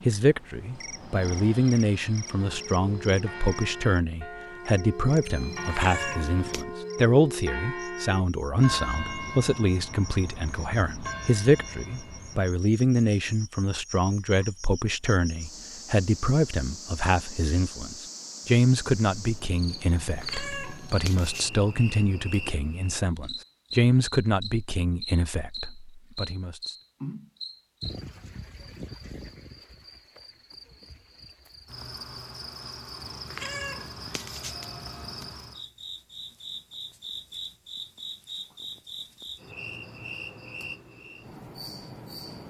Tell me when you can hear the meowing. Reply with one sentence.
You can hear the meowing from 5.3 to 6.7 s, from 20.0 to 21.5 s and from 33.0 to 35.5 s.